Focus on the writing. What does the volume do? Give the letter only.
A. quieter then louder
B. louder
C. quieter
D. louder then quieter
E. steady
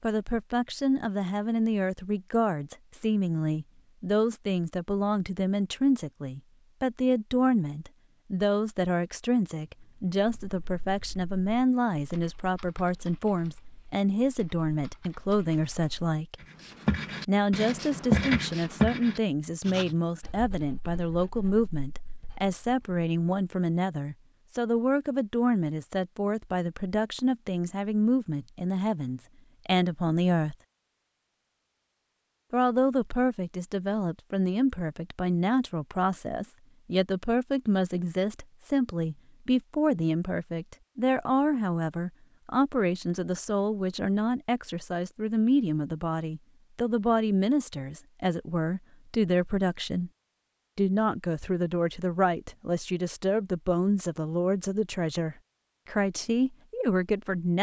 D.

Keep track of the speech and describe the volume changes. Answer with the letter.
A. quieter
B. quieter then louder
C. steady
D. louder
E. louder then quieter
C.